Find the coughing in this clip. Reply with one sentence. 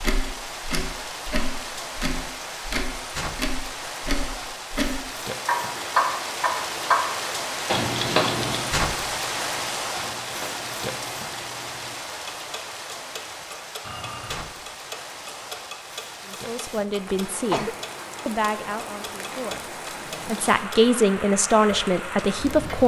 You can hear the coughing from 16.9 to 17.8 s.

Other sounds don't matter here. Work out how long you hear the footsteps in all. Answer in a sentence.
The footsteps can't be heard in this clip.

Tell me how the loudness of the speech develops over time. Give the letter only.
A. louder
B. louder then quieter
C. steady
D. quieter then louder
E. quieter
D.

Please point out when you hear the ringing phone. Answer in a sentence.
The ringing phone can be heard from 13.8 to 14.4 s.